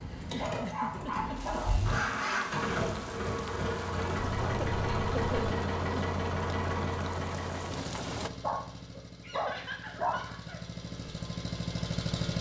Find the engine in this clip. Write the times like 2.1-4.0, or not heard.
0.0-12.3.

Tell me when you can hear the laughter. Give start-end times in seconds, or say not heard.
0.2-1.6, 4.4-6.2, 9.2-10.7.